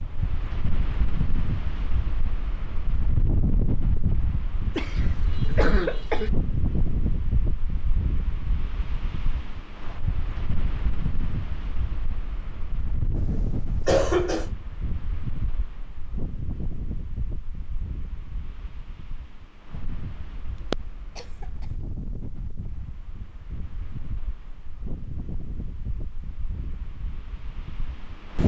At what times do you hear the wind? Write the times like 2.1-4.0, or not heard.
0.0-28.4.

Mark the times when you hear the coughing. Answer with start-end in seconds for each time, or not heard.
4.8-6.3, 13.2-14.5, 20.7-21.4.